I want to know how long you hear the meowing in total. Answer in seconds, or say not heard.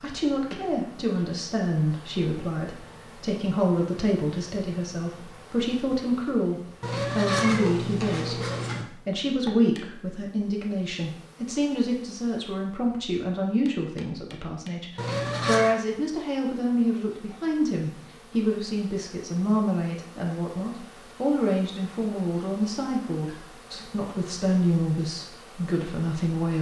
3 s.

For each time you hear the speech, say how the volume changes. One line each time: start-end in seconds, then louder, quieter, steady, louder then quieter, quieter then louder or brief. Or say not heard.
0.0-26.5 steady.